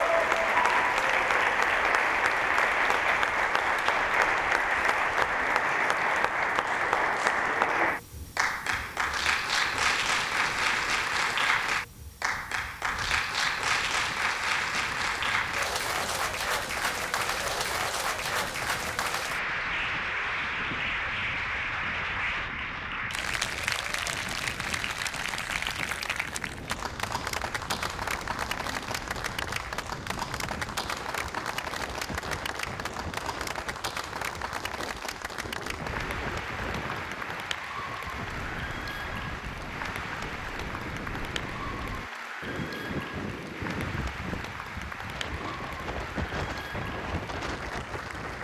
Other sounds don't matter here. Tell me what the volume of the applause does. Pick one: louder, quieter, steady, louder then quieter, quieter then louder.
quieter.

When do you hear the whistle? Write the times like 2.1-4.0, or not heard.
not heard.